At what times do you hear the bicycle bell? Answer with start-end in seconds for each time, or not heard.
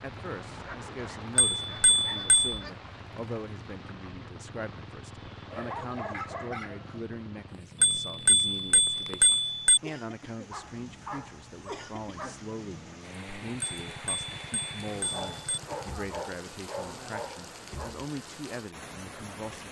1.4-2.5, 7.8-9.8, 13.6-15.6.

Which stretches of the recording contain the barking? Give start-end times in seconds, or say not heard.
0.6-2.9, 5.5-7.0, 10.5-12.4, 15.0-17.9.